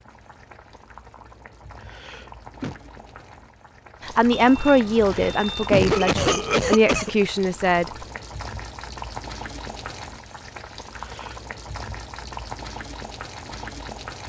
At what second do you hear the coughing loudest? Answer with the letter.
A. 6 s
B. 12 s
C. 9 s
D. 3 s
A.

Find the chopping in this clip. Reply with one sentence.
You can't hear the chopping here.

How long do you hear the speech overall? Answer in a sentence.
You can hear the speech for 4 seconds altogether.